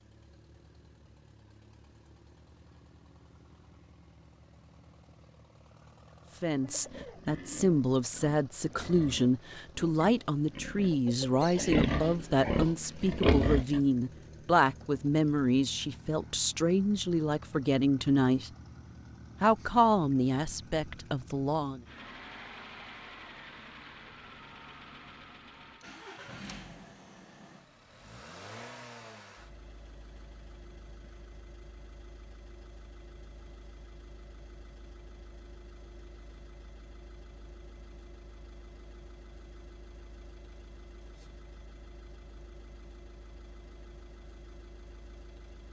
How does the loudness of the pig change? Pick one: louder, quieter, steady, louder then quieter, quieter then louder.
louder.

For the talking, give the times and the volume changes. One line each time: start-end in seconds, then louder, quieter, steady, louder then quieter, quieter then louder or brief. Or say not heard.
6.4-18.5 steady
19.4-21.8 brief.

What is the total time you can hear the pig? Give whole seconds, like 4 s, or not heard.
7 s.